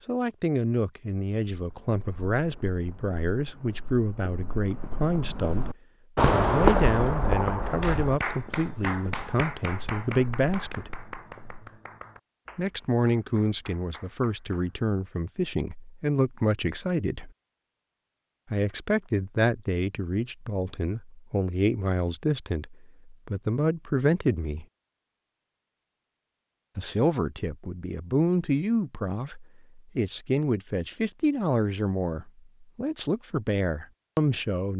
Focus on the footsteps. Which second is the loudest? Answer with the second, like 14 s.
7 s.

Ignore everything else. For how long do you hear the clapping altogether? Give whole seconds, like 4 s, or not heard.
7 s.